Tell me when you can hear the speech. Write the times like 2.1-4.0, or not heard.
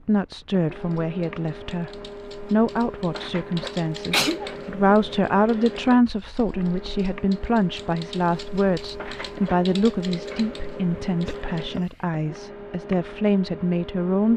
0.1-1.9, 2.5-14.3.